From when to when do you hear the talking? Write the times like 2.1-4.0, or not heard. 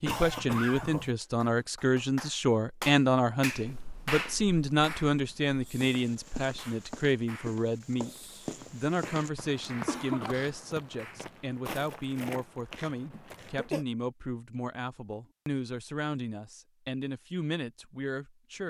0.0-18.6.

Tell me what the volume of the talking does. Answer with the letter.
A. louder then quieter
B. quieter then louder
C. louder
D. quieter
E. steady
D.